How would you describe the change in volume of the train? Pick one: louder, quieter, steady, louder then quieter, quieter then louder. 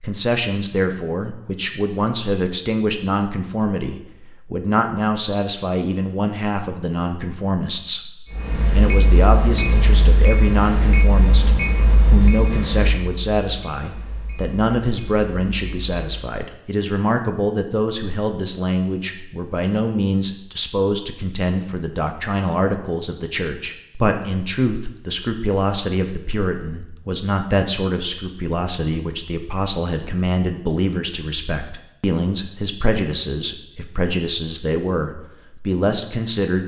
quieter.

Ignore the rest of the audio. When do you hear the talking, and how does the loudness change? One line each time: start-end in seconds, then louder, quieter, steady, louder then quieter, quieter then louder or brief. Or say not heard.
0.0-36.6 steady.